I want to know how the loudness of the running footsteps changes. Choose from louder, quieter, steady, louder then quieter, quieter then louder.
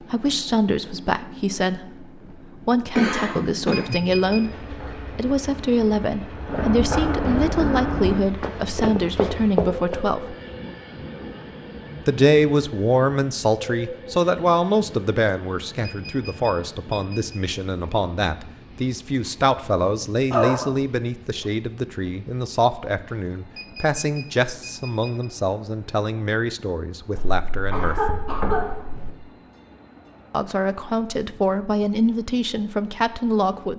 louder.